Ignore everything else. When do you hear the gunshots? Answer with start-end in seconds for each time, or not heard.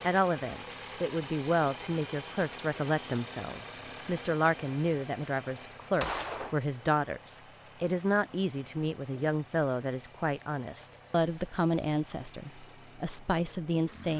6.0-6.6.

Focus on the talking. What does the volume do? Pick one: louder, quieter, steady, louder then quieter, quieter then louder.
steady.